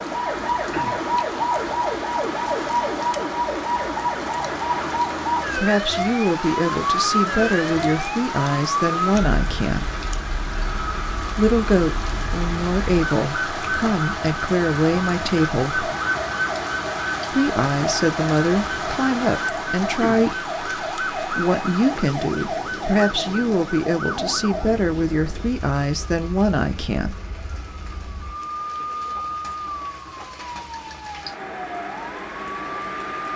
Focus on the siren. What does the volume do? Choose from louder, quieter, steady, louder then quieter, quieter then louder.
quieter.